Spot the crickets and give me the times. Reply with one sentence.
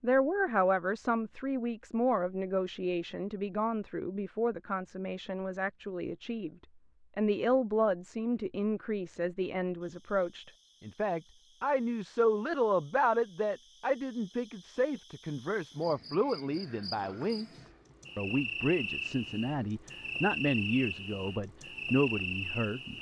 The crickets can be heard from 9.8 to 22.9 s.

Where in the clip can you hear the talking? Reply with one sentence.
The talking can be heard from 0.0 to 6.5 s and from 7.2 to 22.9 s.